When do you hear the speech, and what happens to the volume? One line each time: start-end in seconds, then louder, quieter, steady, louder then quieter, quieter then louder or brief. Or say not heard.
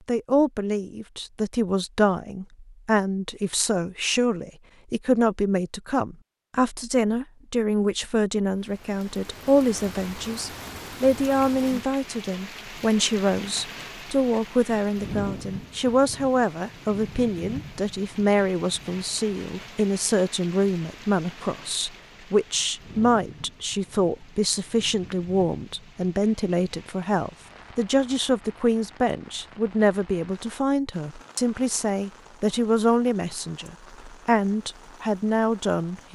0.1-36.0 steady.